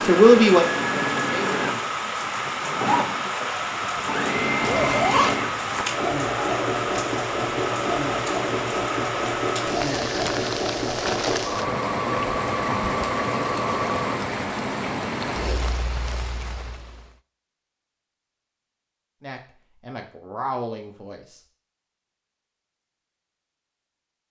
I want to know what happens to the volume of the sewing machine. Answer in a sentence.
The volume of the sewing machine stays about the same.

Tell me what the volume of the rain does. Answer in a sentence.
The volume of the rain stays about the same.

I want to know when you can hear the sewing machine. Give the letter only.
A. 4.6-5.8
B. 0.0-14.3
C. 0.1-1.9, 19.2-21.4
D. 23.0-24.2
B.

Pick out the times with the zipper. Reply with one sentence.
The zipper can be heard from 4.6 to 5.8 s.